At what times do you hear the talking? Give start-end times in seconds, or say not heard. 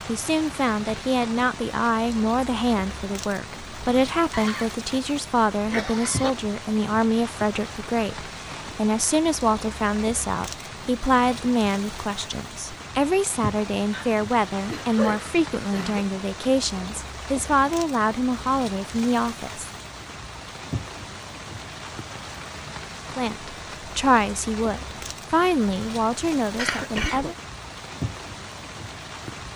0.1-19.7, 23.1-27.4.